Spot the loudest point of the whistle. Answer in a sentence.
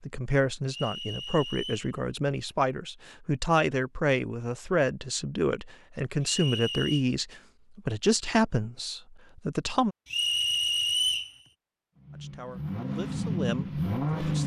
The loudest moment of the whistle is at 11 seconds.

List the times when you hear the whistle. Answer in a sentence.
You can hear the whistle from 0.7 to 1.9 s, from 6.2 to 7.0 s and from 10.1 to 11.3 s.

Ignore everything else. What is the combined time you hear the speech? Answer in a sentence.
You can hear the speech for 12 seconds altogether.